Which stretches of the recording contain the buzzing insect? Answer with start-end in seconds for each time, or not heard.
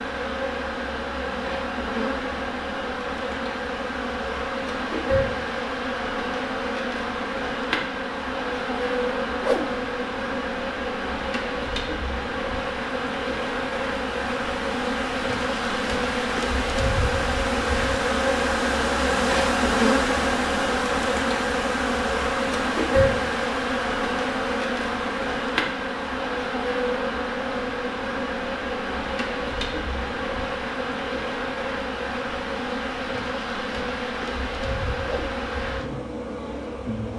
0.0-37.1.